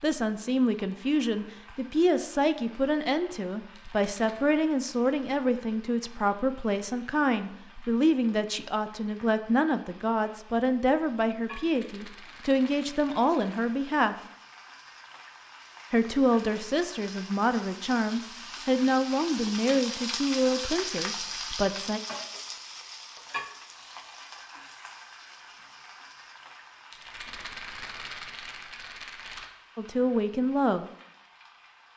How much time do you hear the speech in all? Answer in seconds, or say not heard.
21 s.